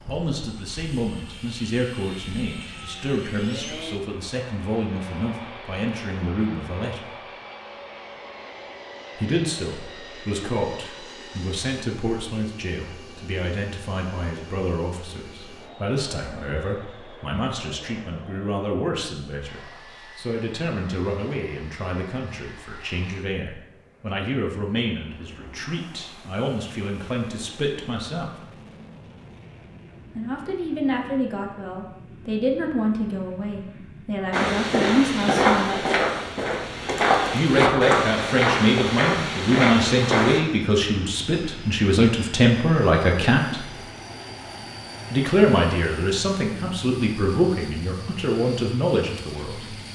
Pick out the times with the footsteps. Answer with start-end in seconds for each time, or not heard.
34.3-40.4.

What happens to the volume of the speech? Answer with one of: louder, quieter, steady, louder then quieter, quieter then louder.
louder.